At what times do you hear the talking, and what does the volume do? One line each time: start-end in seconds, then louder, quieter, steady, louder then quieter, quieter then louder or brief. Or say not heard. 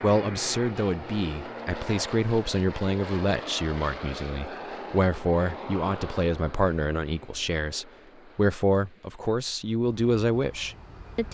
0.0-11.2 steady.